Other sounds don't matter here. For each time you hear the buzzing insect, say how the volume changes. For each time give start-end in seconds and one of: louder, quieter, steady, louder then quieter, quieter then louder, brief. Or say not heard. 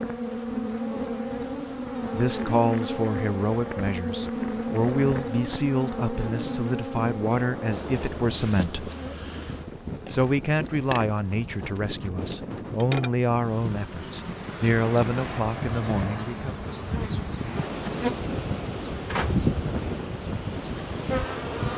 0.0-21.7 quieter then louder.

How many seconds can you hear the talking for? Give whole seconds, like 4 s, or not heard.
13 s.